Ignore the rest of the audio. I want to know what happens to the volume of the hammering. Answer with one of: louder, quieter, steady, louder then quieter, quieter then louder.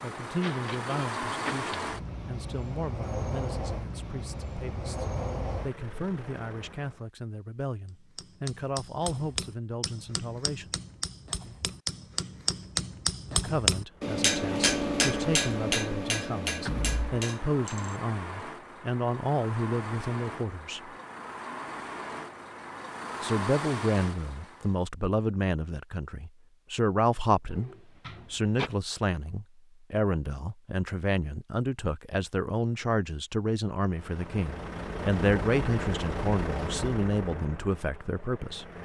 louder then quieter.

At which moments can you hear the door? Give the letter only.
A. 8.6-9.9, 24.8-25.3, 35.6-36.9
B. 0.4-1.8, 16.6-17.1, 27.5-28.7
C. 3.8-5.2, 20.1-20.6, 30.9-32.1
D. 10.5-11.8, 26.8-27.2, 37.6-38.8
B.